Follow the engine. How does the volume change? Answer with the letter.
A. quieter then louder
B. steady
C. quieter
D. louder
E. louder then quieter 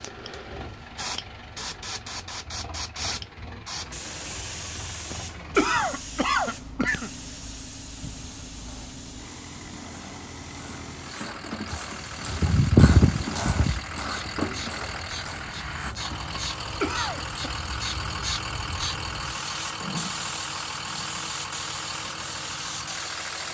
D.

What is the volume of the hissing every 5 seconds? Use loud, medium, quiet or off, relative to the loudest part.
loud, medium, medium, loud, loud.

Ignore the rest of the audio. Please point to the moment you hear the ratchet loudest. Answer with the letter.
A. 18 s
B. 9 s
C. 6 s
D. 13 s
D.